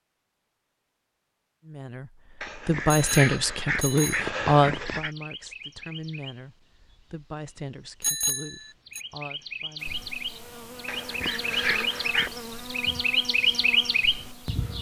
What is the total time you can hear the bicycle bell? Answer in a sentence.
The bicycle bell can be heard for 2 seconds in total.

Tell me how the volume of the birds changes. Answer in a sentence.
The loudness of the birds goes down, then up.